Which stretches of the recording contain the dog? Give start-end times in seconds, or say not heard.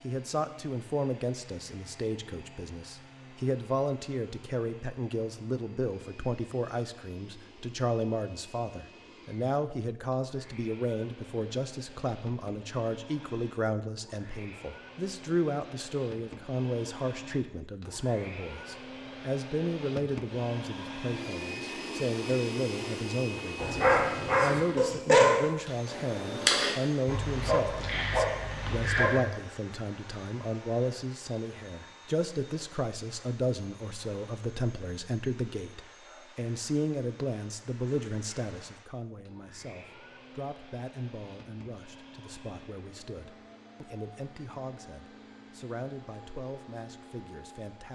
23.6-29.2.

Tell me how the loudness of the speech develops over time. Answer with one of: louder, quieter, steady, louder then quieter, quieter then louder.
quieter.